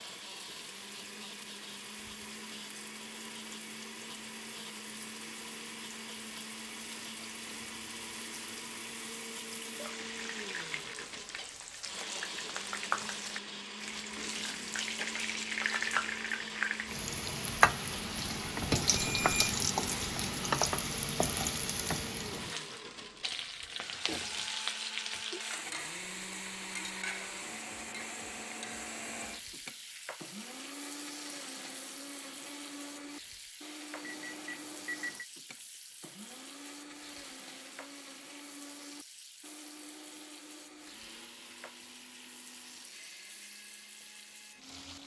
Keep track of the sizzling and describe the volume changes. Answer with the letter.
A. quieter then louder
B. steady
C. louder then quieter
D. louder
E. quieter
C.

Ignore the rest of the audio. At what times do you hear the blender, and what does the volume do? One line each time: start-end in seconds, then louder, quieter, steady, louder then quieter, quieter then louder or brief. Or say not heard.
0.0-45.0 quieter.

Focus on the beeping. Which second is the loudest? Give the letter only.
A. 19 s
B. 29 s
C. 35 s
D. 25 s
A.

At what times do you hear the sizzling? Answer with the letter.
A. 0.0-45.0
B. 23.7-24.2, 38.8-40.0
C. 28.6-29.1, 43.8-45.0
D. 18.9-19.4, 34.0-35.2
A.